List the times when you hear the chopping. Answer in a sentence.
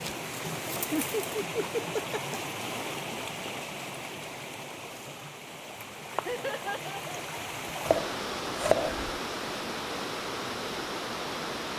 The chopping can be heard from 7.8 to 9.2 s.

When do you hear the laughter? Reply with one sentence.
The laughter can be heard from 0.8 to 2.4 s and from 6.2 to 7.3 s.